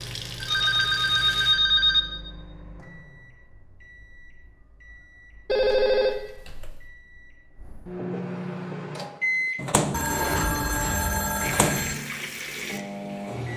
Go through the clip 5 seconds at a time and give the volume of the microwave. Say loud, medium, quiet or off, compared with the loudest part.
quiet, loud, loud.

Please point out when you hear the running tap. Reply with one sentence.
The running tap can be heard from 0.0 to 1.6 s and from 11.3 to 13.5 s.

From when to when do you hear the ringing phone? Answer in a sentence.
The ringing phone can be heard from 0.4 to 2.0 s, from 5.5 to 6.8 s and from 9.9 to 11.9 s.